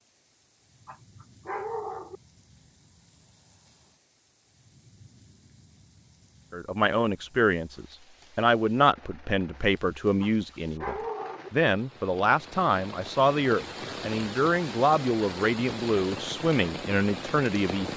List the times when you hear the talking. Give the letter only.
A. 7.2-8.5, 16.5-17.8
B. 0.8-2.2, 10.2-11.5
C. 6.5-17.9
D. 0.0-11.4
C.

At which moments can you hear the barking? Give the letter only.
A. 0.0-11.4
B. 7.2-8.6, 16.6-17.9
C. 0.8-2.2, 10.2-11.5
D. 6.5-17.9
C.